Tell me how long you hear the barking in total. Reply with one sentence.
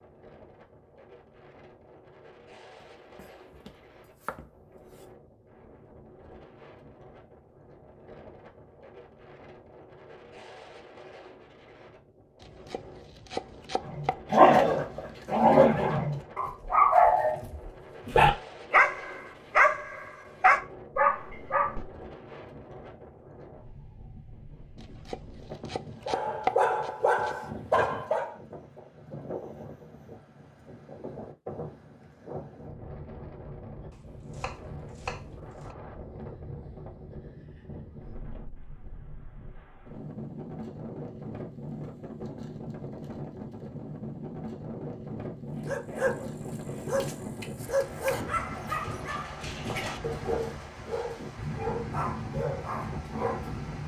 You can hear the barking for 18 seconds altogether.